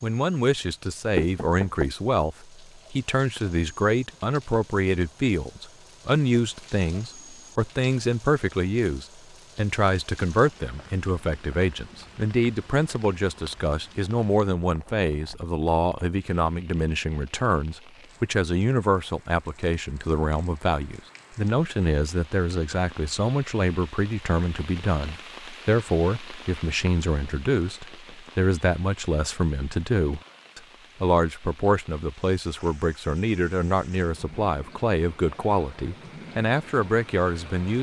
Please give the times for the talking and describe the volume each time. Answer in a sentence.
The talking can be heard from 0.0 to 37.7 s, at a steady volume.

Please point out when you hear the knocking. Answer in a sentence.
The knocking can be heard from 1.1 to 1.9 s.